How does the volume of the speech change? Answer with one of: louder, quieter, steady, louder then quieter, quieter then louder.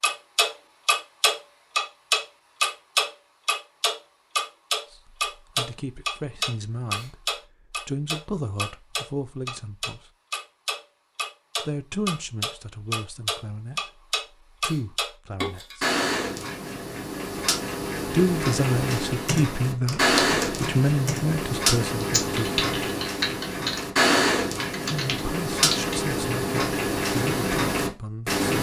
louder then quieter.